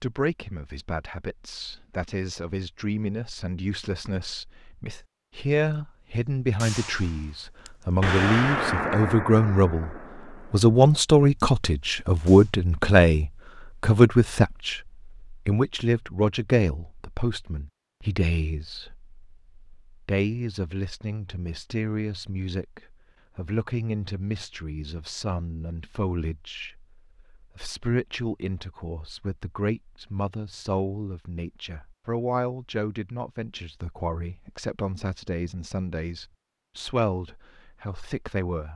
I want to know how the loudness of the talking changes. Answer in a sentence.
The volume of the talking goes up, then down.